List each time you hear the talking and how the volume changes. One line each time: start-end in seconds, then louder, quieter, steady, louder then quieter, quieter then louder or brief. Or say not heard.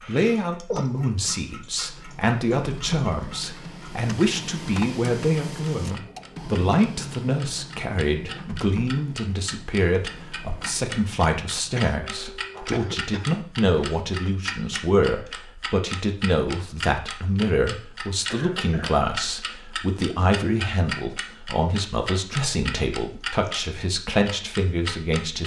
0.1-25.4 steady.